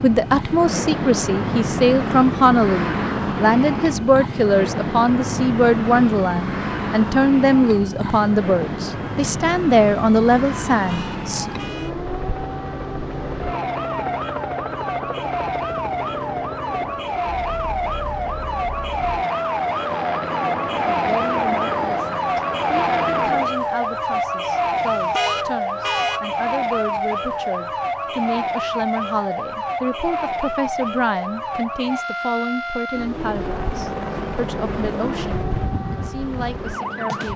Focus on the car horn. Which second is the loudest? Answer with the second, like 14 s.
26 s.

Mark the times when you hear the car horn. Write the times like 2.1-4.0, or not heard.
10.8-11.9, 24.8-26.2.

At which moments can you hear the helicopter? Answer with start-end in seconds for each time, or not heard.
0.0-23.6, 33.0-37.3.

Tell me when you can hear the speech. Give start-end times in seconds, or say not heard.
0.0-11.4, 20.9-37.3.